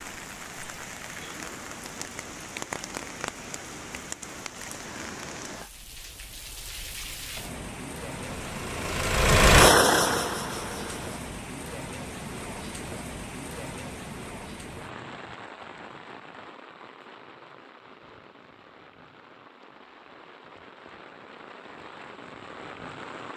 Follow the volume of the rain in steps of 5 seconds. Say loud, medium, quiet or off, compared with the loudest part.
loud, loud, loud, medium, medium.